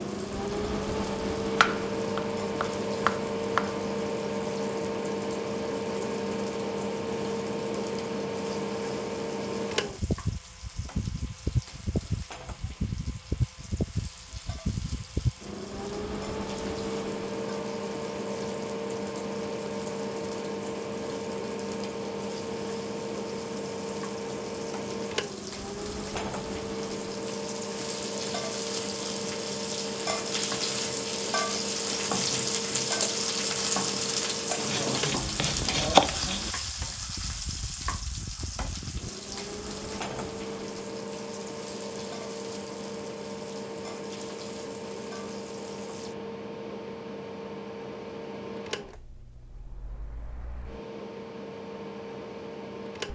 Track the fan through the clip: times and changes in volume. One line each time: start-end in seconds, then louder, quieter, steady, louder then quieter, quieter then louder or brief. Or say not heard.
0.0-53.0 quieter.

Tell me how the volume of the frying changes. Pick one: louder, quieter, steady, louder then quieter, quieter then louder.
louder then quieter.